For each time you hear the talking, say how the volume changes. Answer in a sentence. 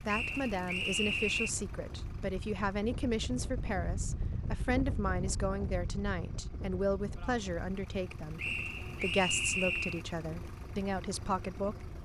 The talking can be heard from 0.1 to 11.9 s, at a steady volume.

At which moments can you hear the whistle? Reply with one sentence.
You can hear the whistle from 0.1 to 1.5 s and from 8.3 to 10.1 s.